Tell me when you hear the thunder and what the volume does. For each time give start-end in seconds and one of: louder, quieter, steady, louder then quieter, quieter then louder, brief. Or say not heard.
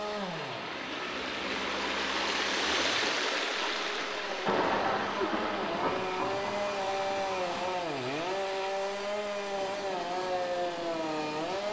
3.5-8.0 quieter.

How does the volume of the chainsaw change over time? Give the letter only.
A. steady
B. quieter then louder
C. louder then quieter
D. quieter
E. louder
E.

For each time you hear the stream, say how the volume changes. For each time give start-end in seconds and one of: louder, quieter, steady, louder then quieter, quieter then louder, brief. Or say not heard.
0.0-11.6 quieter.